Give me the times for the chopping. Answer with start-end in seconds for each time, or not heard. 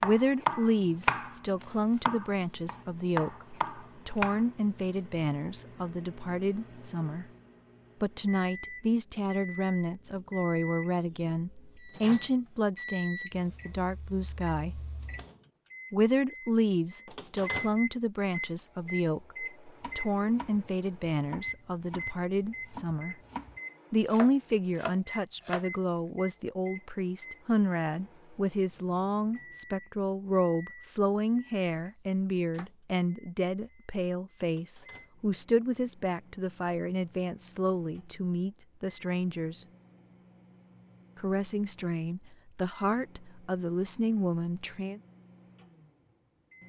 0.0-4.5, 19.8-25.6.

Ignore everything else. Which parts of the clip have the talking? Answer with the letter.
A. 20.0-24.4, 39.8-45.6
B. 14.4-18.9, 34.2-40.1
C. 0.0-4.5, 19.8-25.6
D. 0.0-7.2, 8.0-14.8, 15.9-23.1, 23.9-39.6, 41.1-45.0
D.